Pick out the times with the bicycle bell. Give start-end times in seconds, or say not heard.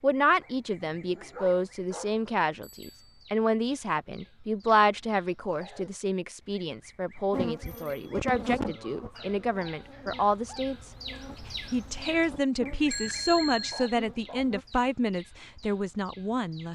2.6-3.2, 7.7-8.2, 12.9-13.9.